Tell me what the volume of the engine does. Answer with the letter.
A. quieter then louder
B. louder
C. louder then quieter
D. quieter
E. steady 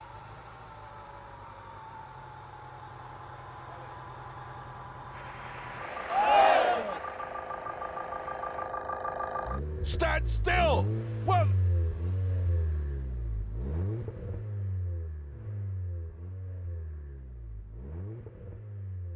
C.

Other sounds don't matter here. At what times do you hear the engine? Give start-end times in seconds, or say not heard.
0.0-19.1.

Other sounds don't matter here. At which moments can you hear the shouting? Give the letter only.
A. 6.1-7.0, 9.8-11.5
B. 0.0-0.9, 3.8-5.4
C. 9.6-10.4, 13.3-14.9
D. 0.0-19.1
A.